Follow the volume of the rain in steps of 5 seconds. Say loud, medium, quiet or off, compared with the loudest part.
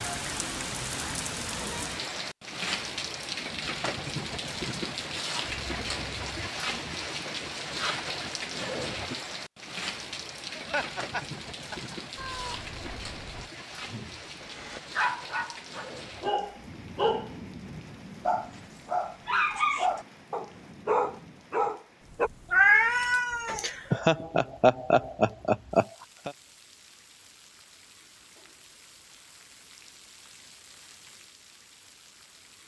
loud, loud, medium, medium, quiet, quiet, quiet.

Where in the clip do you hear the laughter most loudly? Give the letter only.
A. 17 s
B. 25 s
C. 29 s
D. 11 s
B.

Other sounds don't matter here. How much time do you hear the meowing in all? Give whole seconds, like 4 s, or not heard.
4 s.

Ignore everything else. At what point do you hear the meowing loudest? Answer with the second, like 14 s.
23 s.